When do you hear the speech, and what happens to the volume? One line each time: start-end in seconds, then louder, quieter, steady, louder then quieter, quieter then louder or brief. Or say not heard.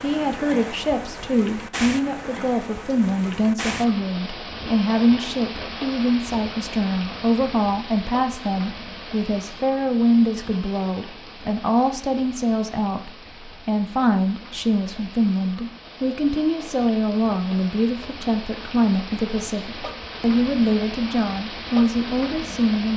0.0-22.9 steady.